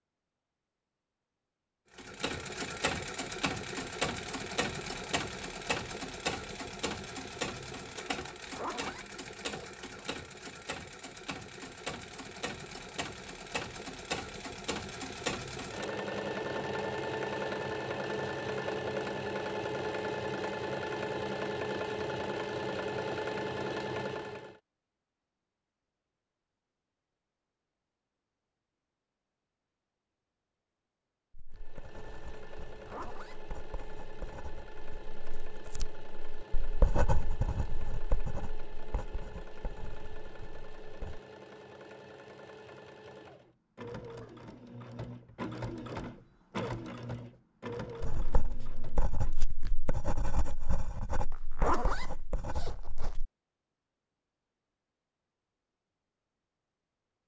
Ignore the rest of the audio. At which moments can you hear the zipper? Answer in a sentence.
The zipper can be heard from 8.5 to 10.1 s, from 32.9 to 33.4 s and from 51.3 to 53.1 s.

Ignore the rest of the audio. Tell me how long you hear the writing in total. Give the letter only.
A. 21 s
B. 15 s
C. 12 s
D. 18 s
B.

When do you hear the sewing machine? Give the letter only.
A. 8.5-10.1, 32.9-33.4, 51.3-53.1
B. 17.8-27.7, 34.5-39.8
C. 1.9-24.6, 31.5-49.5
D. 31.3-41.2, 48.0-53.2
C.